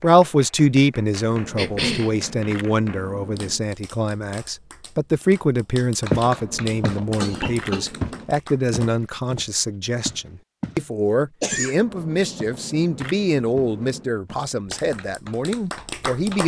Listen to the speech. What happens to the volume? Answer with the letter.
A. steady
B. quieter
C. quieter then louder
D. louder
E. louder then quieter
A.